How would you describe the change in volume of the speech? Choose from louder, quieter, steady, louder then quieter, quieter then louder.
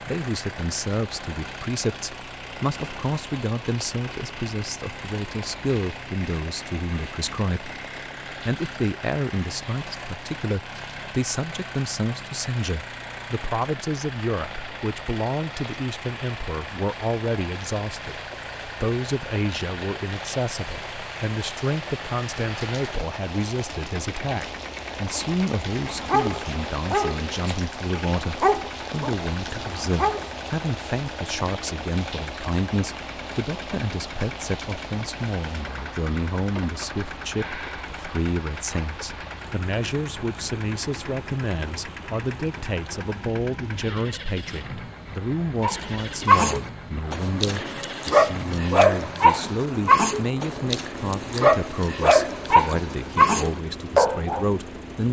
steady.